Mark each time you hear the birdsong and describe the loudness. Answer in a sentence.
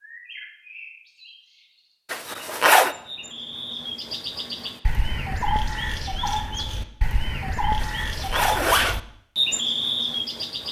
You can hear the birdsong from 0.0 to 10.6 s, getting louder.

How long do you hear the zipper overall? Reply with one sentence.
You can hear the zipper for 2 seconds altogether.